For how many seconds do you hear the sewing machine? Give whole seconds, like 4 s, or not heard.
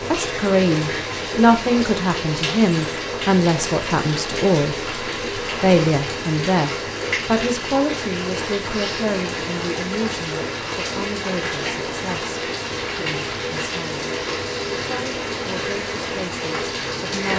not heard.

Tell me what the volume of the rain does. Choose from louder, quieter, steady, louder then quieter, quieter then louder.
steady.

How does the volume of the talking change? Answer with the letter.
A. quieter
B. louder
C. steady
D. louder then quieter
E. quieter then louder
A.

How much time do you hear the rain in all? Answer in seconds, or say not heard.
17 s.